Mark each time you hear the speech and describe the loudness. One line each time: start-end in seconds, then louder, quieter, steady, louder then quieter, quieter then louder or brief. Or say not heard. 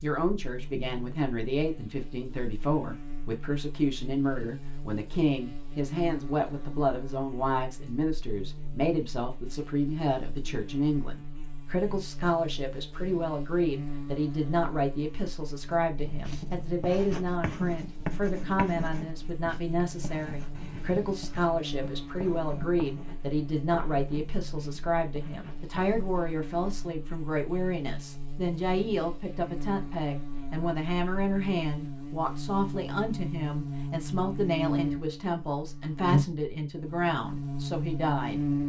0.0-38.6 steady.